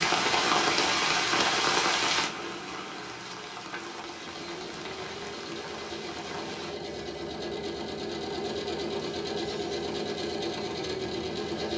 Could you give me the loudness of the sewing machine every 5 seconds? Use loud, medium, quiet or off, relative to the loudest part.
medium, loud, loud.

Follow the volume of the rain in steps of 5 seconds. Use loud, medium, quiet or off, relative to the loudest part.
loud, quiet, off.